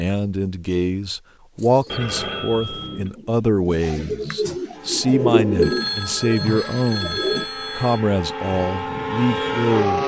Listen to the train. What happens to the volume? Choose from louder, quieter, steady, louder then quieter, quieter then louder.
louder.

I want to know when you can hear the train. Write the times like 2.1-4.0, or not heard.
4.7-10.0.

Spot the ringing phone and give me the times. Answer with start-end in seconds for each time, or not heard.
1.9-3.1, 5.6-8.0.